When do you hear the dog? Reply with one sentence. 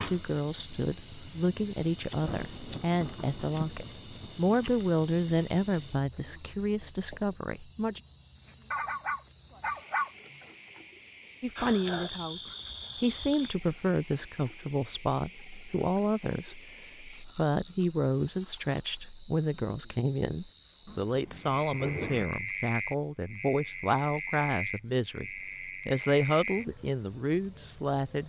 The dog can be heard from 8.7 to 10.1 s.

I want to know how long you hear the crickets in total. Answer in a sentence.
You can hear the crickets for 28 seconds altogether.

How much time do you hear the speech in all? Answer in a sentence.
You can hear the speech for 25 seconds altogether.